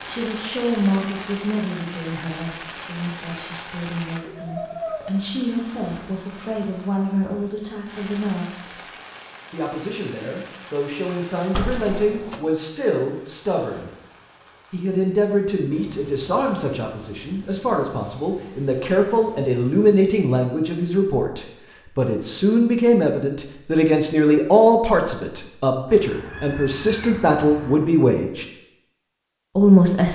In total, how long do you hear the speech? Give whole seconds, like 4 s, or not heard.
27 s.